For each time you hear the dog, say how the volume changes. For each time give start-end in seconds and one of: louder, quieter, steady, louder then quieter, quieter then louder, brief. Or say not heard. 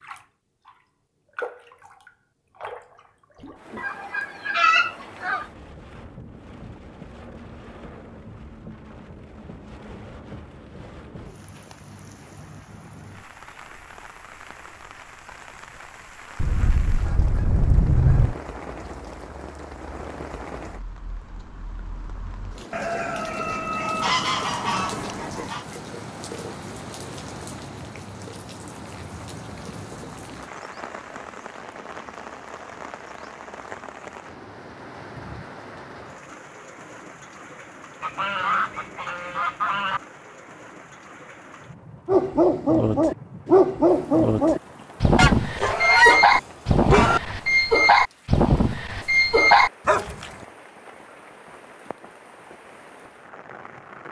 42.0-50.3 steady.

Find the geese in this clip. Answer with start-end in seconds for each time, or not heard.
3.8-5.5, 16.4-18.4, 22.7-25.6, 38.0-40.0, 45.1-47.2.